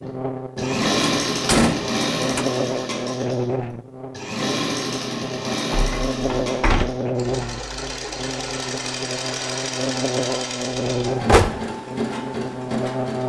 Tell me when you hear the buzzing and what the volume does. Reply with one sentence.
You can hear the buzzing from 0.0 to 13.2 s, at a steady volume.